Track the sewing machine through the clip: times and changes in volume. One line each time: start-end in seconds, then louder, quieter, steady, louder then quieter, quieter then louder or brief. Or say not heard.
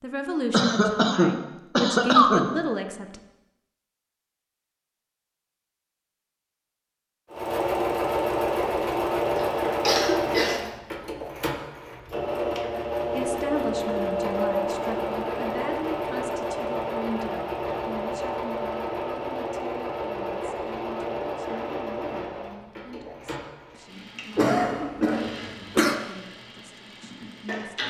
7.3-27.8 quieter.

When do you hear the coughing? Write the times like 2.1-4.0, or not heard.
0.5-2.5, 9.3-10.7, 24.4-25.9.